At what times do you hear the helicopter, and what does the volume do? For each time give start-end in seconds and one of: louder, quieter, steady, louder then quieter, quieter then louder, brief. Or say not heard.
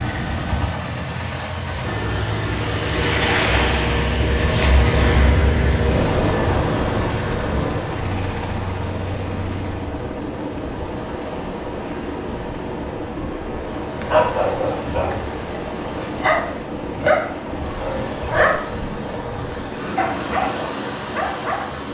0.0-21.8 quieter.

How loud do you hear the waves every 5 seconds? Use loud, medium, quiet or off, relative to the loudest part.
loud, loud, medium, medium, medium.